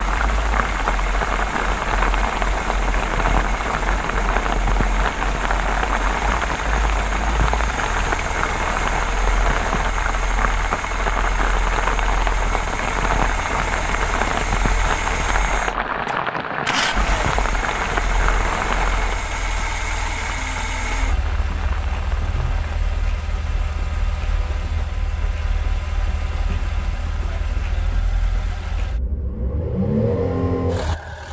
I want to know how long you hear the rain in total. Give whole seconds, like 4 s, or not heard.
23 s.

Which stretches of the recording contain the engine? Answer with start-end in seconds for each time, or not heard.
0.0-31.2.